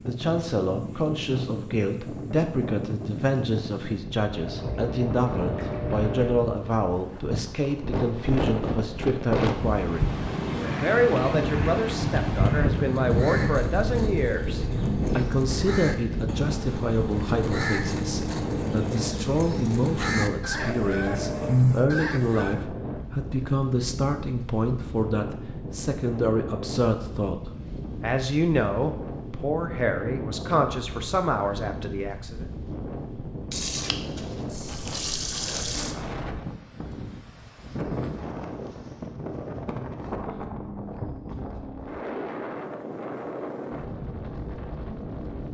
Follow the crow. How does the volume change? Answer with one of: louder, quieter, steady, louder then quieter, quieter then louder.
louder.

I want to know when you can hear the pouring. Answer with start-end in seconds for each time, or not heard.
4.3-6.3, 20.5-21.6, 33.5-36.0.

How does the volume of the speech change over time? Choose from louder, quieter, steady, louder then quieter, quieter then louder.
steady.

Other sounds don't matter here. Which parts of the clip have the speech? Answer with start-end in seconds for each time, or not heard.
0.0-32.5.